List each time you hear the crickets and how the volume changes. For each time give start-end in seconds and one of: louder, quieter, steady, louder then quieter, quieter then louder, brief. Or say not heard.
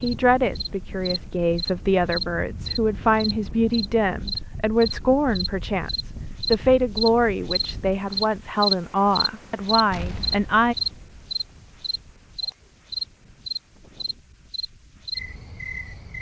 0.0-16.1 louder then quieter.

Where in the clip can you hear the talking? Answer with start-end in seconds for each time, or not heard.
0.0-10.8.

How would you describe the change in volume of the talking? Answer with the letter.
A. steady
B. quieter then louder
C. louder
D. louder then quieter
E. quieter
A.